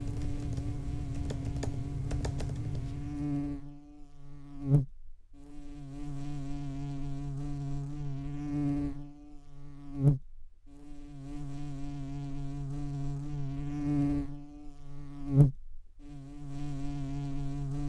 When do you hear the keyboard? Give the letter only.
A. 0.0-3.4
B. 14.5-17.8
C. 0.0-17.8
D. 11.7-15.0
A.